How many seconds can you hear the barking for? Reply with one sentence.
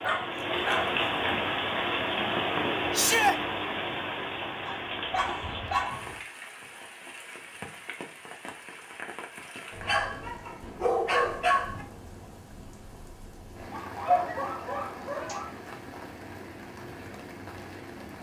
The barking can be heard for 7 seconds in total.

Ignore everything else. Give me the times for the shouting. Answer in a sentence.
The shouting can be heard from 2.9 to 3.4 s.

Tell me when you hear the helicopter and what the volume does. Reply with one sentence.
The helicopter can't be heard in this clip.